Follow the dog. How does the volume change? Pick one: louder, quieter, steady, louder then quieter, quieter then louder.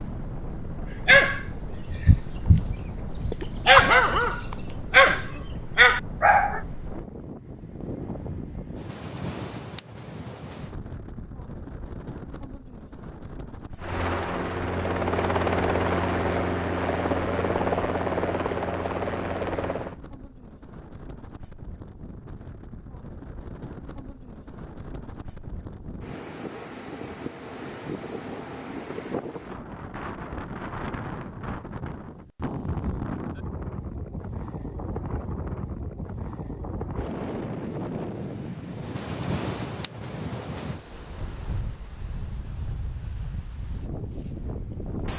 louder.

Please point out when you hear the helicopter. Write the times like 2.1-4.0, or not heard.
13.8-19.9.